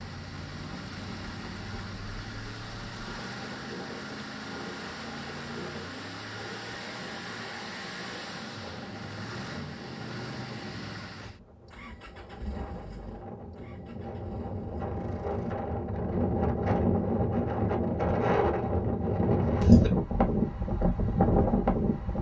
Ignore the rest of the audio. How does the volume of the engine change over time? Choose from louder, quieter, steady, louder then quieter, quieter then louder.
quieter.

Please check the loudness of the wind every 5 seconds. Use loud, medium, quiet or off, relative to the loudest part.
quiet, quiet, quiet, loud, loud.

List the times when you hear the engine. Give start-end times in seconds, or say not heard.
0.0-15.6.